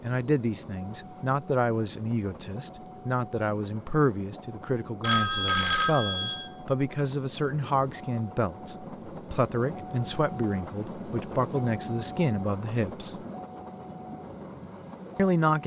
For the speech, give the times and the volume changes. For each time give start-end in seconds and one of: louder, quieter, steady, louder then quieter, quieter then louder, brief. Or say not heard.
0.0-13.2 steady
15.2-15.6 brief.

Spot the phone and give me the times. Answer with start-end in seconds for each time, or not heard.
5.0-6.5.